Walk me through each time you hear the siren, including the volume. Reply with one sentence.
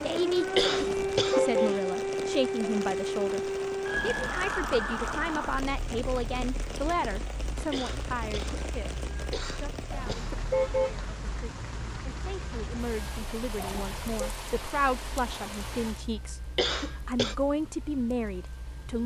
The siren can be heard from 0.0 to 19.0 s, getting quieter.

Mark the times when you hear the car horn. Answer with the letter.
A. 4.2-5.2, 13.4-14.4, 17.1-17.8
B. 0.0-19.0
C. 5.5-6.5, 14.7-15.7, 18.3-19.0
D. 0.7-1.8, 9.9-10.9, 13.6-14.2
D.